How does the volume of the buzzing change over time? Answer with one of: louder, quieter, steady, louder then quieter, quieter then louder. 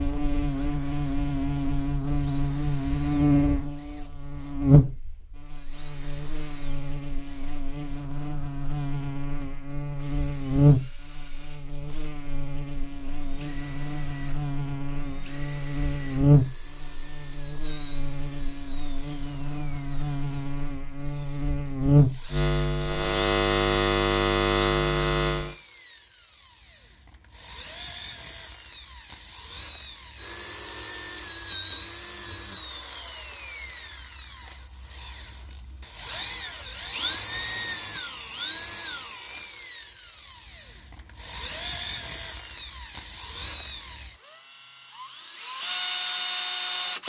quieter then louder.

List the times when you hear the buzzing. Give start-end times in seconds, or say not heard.
0.0-25.6.